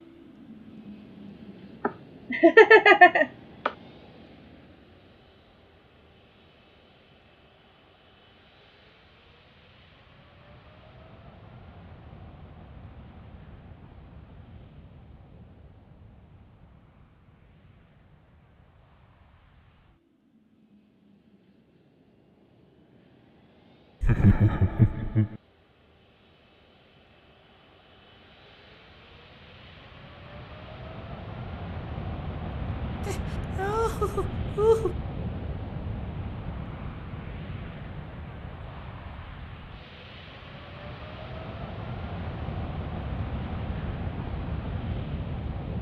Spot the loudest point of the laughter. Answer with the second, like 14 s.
3 s.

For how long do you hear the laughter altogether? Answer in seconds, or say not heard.
5 s.